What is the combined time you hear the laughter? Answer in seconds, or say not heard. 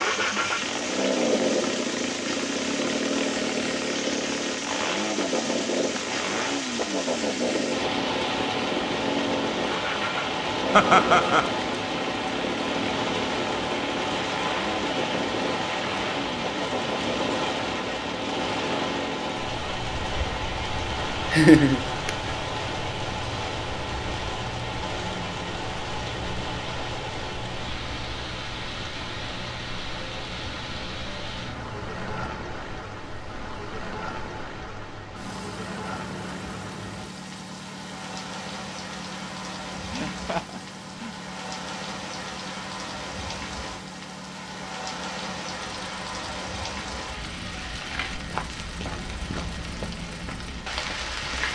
3 s.